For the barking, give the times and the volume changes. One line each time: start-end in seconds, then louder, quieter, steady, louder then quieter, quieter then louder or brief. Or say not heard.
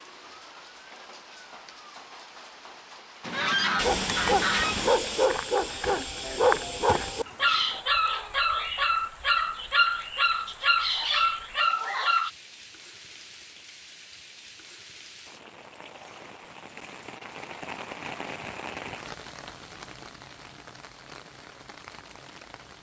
3.8-12.3 steady.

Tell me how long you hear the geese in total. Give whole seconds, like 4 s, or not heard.
2 s.